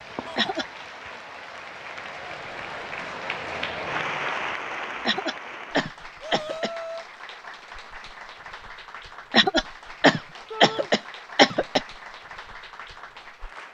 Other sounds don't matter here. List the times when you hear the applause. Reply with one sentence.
You can hear the applause from 0.0 to 13.6 s.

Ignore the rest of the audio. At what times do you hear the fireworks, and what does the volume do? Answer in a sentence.
You can't hear the fireworks here.